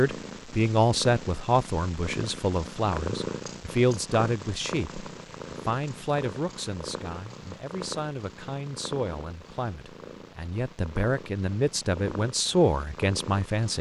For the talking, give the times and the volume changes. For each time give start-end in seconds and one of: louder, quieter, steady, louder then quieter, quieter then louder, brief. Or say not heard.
0.0-13.7 quieter then louder.